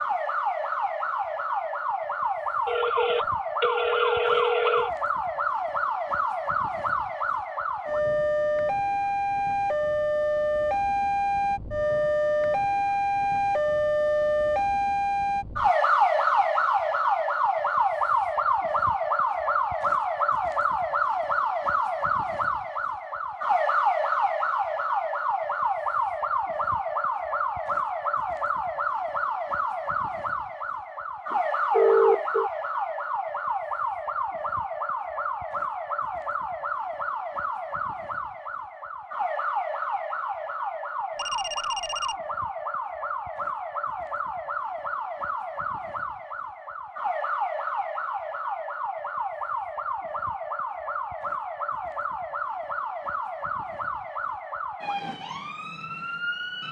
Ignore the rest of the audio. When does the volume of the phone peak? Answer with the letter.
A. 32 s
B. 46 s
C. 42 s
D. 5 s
A.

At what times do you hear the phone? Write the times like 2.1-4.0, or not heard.
2.6-4.9, 31.3-32.5, 41.1-42.1.